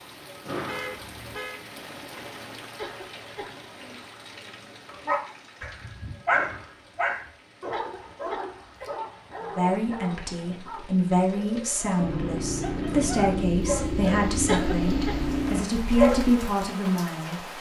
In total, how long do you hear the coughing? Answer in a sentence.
You can hear the coughing for 3 seconds altogether.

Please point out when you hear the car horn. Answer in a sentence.
The car horn can be heard from 0.7 to 1.6 s.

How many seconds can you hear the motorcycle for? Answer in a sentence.
You can hear the motorcycle for 4 seconds altogether.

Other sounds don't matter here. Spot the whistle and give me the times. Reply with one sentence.
You can't hear the whistle here.